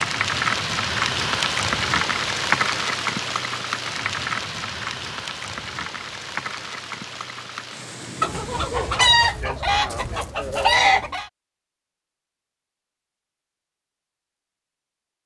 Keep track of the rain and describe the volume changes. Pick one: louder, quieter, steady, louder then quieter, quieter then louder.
quieter.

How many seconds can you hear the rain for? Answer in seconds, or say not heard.
9 s.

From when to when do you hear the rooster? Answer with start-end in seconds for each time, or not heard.
8.2-11.3.